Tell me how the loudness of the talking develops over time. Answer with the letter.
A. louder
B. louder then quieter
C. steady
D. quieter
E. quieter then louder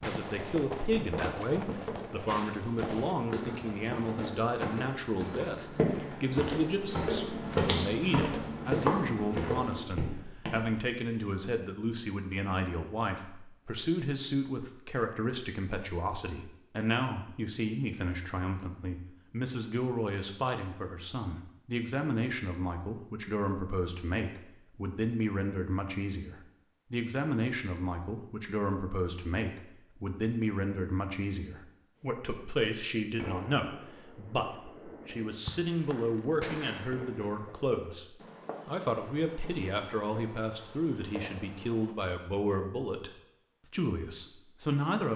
C.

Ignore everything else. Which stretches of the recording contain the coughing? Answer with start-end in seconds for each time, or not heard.
not heard.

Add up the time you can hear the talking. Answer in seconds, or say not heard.
45 s.